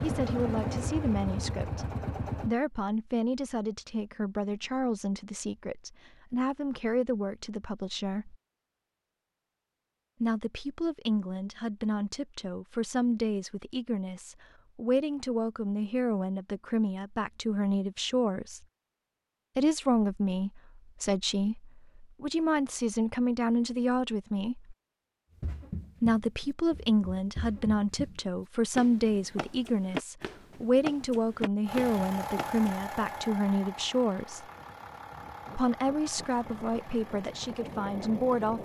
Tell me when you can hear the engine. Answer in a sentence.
You can hear the engine from 0.0 to 2.5 s and from 31.6 to 38.6 s.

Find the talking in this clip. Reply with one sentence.
You can hear the talking from 0.0 to 8.3 s, from 10.2 to 18.6 s, from 19.6 to 24.8 s, from 26.0 to 34.5 s and from 35.5 to 38.6 s.